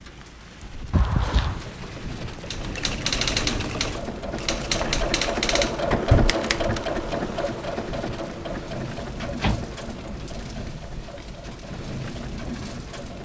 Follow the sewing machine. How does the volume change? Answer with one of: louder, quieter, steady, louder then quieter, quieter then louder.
louder then quieter.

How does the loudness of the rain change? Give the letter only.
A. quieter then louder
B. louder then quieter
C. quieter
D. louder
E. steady
E.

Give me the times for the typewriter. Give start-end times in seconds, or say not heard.
2.5-6.8.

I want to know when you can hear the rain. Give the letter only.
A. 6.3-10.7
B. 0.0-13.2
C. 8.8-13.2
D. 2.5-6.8
B.